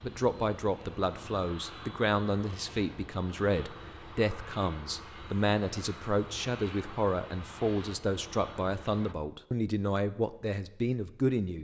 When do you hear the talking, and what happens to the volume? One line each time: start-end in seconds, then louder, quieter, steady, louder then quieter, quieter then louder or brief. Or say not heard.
0.0-11.5 steady.